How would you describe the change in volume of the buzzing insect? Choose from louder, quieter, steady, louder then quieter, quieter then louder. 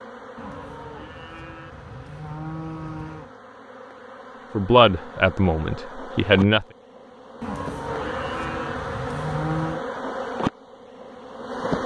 louder.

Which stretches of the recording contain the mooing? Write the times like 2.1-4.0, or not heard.
0.3-3.3, 7.4-9.8.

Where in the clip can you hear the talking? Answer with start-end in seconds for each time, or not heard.
4.5-6.7.